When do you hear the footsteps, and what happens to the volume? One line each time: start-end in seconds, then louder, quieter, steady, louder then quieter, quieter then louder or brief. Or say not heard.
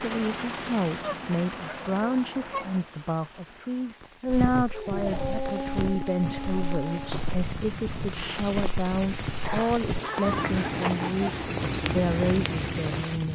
4.2-13.1 louder.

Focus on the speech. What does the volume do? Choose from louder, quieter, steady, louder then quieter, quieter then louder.
steady.